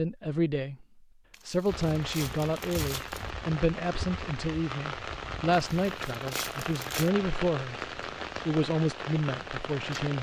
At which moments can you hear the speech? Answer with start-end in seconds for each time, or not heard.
0.0-0.8, 1.4-7.8, 8.4-10.1.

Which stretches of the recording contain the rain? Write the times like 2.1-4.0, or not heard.
1.6-10.1.